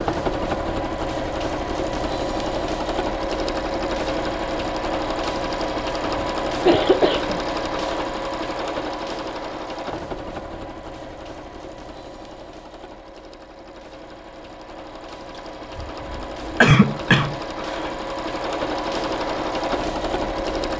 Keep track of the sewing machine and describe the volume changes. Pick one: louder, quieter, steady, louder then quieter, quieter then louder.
quieter then louder.